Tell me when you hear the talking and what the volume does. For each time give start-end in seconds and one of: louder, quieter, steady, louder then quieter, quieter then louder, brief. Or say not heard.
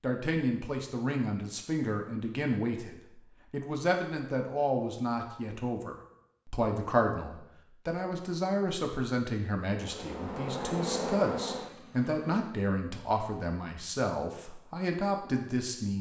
0.0-15.9 steady.